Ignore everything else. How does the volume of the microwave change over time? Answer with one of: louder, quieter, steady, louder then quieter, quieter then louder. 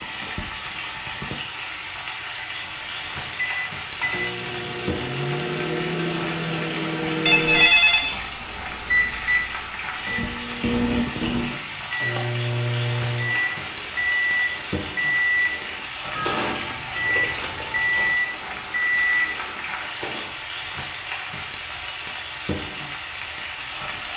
steady.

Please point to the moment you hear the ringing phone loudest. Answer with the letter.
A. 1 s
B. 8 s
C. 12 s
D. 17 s
B.